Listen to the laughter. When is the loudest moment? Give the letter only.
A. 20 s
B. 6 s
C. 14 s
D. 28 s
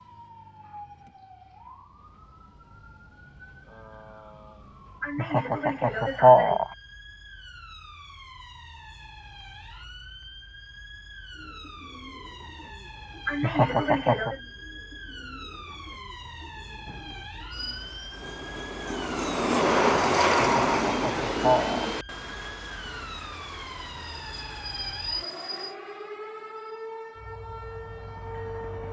B.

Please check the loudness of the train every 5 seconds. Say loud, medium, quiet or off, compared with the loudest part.
off, off, off, loud, loud, quiet.